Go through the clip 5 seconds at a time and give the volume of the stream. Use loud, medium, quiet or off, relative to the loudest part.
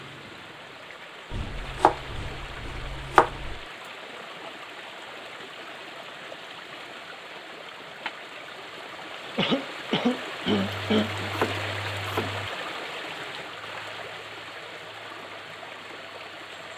medium, medium, loud, medium.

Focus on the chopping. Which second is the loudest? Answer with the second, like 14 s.
3 s.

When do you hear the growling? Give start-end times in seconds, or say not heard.
not heard.